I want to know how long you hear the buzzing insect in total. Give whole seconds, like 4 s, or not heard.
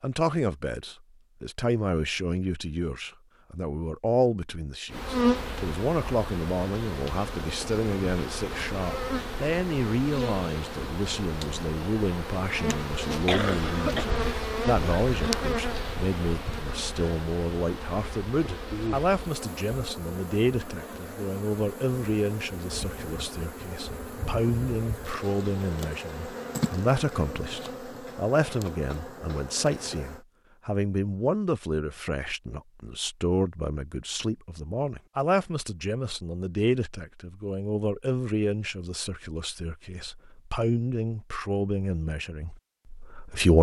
25 s.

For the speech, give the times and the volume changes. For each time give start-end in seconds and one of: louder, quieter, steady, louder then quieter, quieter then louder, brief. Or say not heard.
0.0-43.5 steady.